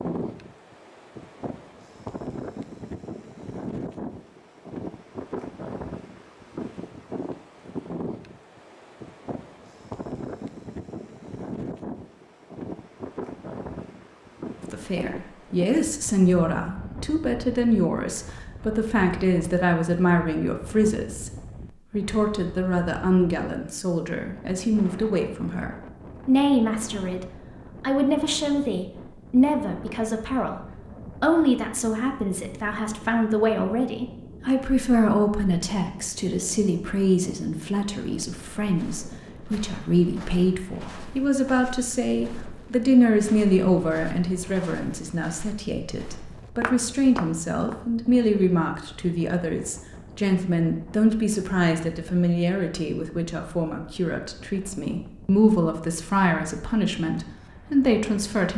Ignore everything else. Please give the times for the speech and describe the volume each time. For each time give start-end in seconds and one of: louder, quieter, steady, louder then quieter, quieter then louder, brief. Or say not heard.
14.7-21.3 steady
21.9-58.5 steady.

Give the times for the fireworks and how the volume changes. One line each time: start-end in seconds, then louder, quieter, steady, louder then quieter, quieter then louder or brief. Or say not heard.
not heard.